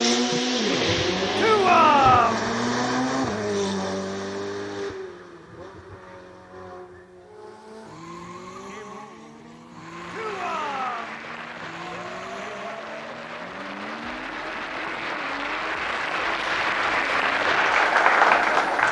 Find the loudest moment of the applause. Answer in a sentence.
The volume of the applause peaks at 18 seconds.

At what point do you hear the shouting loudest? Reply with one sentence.
The loudest moment of the shouting is at 2 seconds.